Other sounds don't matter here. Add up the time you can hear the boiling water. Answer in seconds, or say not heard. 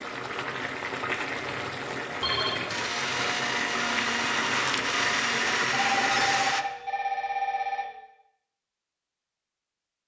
7 s.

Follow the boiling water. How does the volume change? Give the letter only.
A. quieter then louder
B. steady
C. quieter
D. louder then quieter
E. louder
B.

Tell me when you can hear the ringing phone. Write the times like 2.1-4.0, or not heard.
2.2-2.9, 5.7-8.0.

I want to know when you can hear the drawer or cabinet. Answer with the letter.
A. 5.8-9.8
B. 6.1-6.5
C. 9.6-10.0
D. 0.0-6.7
B.